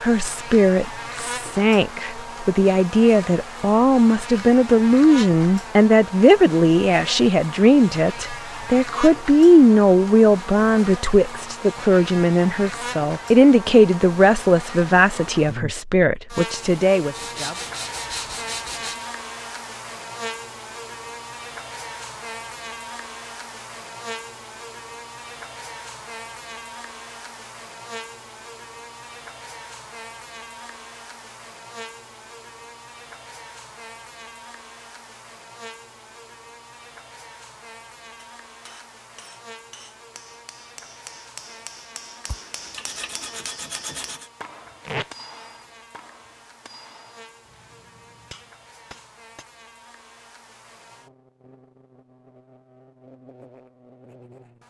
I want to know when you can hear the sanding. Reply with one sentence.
The sanding can be heard from 17.1 to 19.1 s and from 42.2 to 44.3 s.